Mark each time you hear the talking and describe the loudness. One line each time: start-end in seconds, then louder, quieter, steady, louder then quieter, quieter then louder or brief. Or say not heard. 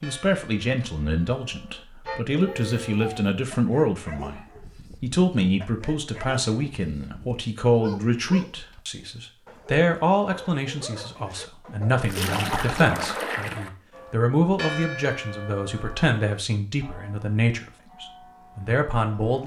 0.0-19.4 steady.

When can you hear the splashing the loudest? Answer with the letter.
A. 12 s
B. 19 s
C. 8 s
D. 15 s
A.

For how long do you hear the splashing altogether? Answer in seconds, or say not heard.
2 s.